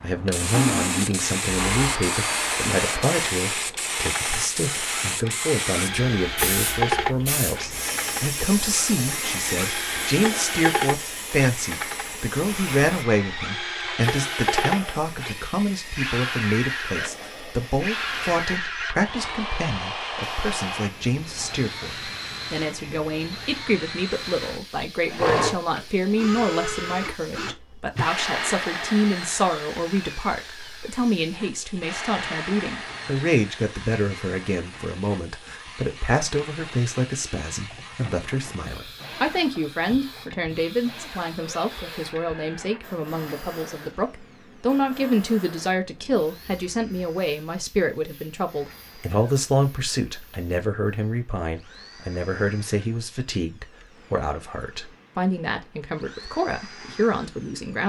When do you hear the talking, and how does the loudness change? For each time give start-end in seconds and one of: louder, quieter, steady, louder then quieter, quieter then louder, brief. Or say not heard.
0.0-57.8 steady.